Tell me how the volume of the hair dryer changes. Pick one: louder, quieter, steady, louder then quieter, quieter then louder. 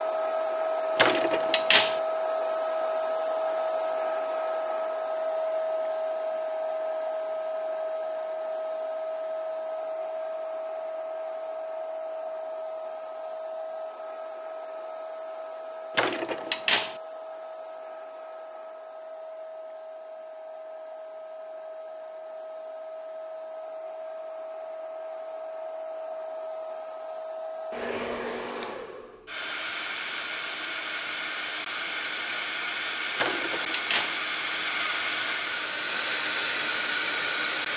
quieter then louder.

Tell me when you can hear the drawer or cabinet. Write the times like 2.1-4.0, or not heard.
0.9-2.0, 15.9-16.9, 33.1-34.2.